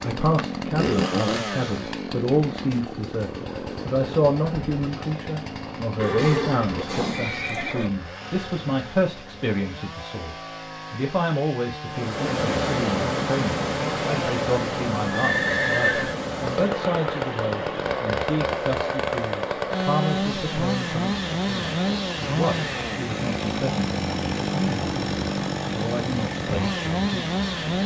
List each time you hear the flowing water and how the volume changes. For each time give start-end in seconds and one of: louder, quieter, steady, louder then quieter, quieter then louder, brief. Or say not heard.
11.8-27.8 quieter.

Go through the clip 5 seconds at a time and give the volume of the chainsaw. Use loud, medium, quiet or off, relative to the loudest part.
loud, medium, medium, loud, loud, loud.